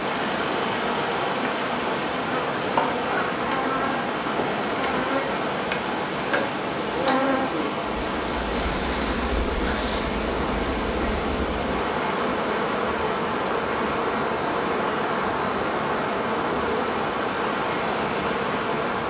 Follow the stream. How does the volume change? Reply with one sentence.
The loudness of the stream stays about the same.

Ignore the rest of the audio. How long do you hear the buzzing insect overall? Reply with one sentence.
The buzzing insect can be heard for 19 seconds in total.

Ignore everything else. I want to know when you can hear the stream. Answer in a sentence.
The stream can be heard from 0.0 to 19.0 s.